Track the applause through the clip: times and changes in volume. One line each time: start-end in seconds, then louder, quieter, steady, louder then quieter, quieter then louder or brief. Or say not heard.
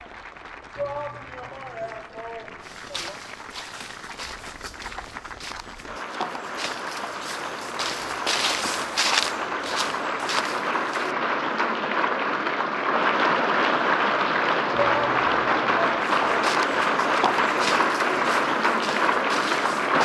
0.0-20.0 louder.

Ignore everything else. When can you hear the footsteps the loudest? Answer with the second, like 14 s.
9 s.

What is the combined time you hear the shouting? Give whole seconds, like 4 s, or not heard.
4 s.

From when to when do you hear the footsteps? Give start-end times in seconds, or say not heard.
2.6-11.2, 16.0-20.0.